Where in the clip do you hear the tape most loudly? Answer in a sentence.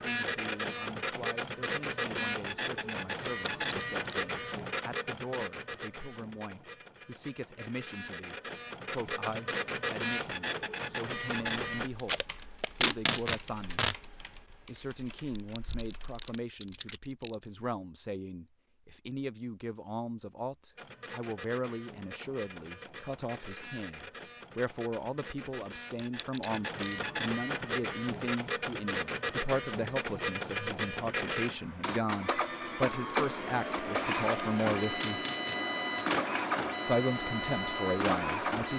The loudest moment of the tape is at 13 seconds.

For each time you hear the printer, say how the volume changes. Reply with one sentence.
The printer can be heard from 0.0 to 11.9 s, getting quieter then louder; and from 20.8 to 38.7 s, getting louder.